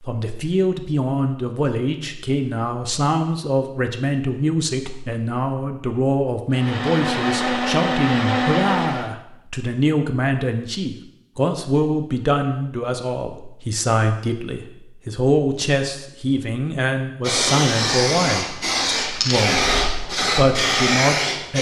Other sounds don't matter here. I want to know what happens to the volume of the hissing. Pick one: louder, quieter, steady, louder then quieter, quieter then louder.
steady.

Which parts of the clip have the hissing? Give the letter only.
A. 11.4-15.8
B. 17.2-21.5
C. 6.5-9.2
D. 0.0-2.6
B.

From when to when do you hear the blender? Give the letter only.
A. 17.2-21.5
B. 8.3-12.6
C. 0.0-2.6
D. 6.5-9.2
D.